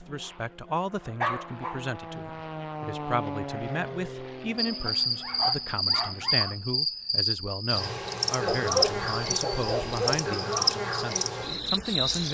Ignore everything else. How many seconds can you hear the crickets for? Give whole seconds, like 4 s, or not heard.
8 s.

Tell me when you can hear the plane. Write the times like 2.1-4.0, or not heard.
0.0-6.8.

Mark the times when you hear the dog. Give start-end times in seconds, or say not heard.
1.2-1.9, 4.8-6.5, 8.4-10.2.